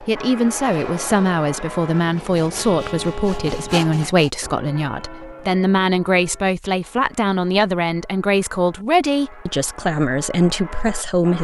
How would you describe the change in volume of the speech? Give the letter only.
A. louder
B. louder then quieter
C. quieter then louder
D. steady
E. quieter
D.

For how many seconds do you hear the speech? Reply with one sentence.
The speech can be heard for 11 seconds in total.